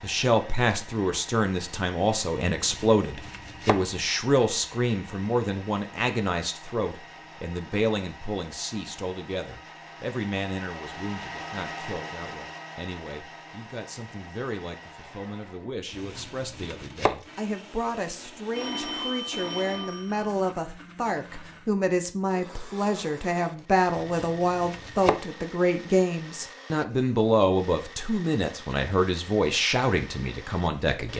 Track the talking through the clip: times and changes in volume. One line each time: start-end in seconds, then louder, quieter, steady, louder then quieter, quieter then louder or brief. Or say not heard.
0.0-31.1 quieter then louder.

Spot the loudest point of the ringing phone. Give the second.
19 s.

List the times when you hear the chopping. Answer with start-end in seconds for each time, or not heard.
2.5-3.8, 15.9-17.1, 23.9-25.2.